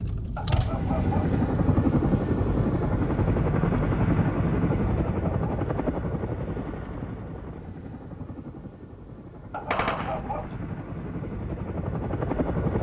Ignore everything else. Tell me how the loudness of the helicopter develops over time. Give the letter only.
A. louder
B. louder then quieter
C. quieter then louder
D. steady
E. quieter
C.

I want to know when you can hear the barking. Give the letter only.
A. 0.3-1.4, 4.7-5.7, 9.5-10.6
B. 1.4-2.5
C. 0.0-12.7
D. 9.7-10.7
A.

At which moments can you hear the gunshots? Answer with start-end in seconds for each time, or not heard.
9.7-10.7.